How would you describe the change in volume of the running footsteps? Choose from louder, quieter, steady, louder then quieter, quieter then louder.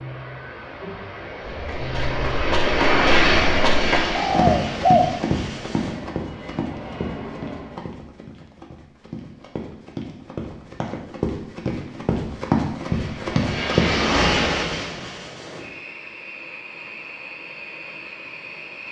quieter then louder.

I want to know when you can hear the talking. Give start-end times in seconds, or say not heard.
not heard.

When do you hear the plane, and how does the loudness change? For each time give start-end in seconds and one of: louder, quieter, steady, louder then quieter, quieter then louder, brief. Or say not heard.
0.0-8.0 louder then quieter
12.8-18.8 quieter.